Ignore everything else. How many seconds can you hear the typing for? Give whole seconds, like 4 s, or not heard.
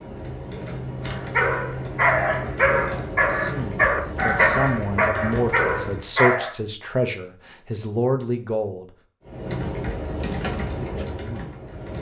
9 s.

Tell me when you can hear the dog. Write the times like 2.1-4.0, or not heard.
1.1-6.5.